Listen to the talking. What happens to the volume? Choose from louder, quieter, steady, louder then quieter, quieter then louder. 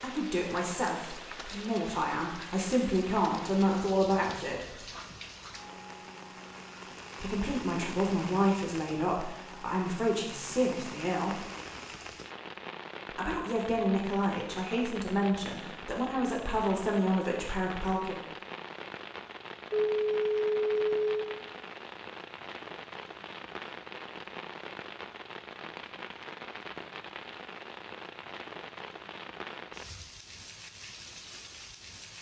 steady.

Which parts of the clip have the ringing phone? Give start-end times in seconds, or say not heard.
19.7-21.3.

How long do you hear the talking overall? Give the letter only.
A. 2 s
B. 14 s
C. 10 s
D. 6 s
B.